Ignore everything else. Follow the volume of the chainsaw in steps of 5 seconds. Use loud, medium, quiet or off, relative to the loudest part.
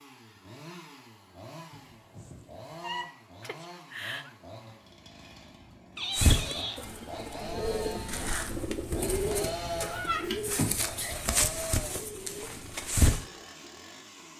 medium, loud, loud.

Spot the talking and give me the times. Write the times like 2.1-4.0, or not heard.
not heard.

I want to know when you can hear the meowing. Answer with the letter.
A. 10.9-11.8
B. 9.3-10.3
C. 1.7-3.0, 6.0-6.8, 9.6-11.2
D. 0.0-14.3
C.